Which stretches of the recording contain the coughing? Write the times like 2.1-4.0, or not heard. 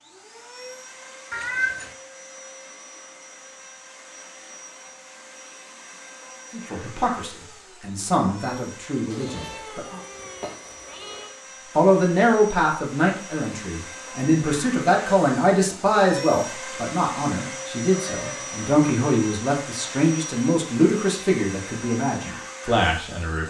not heard.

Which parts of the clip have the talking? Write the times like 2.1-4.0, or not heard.
6.5-10.0, 11.8-23.4.